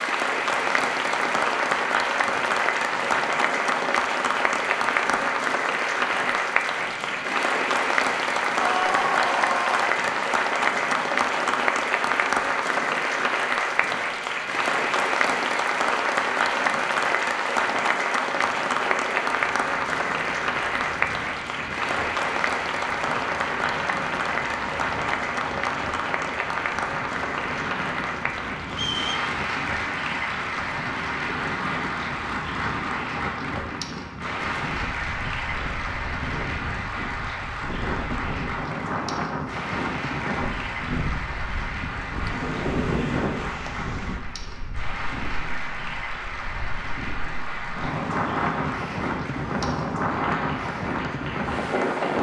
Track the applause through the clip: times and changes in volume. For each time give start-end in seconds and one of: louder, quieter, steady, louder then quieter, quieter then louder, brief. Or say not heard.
0.0-52.1 quieter.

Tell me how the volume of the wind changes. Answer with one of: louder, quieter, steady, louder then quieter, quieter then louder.
louder.